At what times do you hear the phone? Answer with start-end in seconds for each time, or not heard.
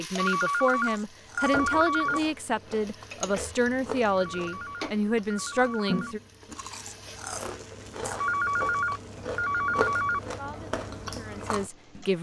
0.1-2.2, 4.1-6.2, 8.2-10.2.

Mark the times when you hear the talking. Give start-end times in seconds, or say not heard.
0.0-6.2, 10.3-12.1.